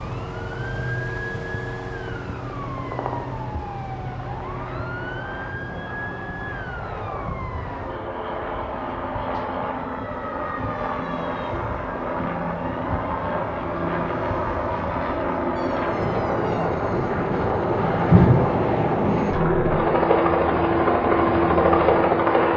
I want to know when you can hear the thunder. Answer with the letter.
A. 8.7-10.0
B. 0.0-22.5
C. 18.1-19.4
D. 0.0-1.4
C.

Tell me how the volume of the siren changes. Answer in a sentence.
The loudness of the siren goes down.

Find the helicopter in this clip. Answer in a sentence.
The helicopter can be heard from 0.0 to 22.5 s.